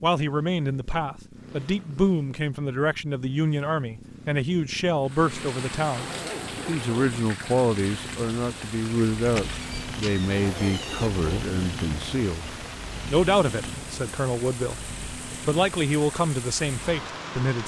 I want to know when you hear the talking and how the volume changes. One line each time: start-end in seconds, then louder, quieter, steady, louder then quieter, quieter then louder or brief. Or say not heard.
0.0-17.6 steady.